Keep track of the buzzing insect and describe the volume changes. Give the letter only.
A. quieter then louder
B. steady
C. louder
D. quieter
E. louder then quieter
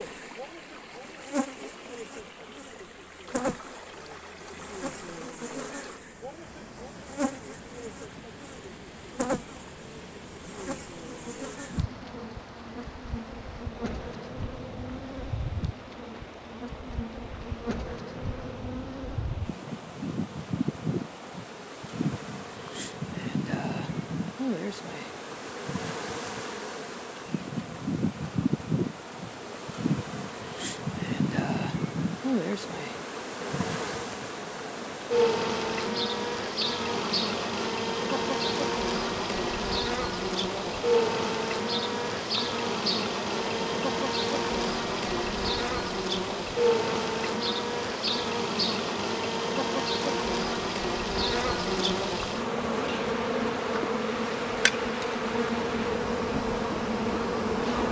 C.